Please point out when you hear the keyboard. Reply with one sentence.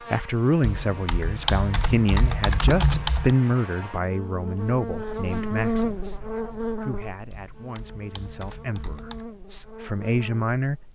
You can hear the keyboard from 0.6 to 3.3 s and from 7.3 to 9.2 s.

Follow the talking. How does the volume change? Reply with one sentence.
The volume of the talking goes down, then up.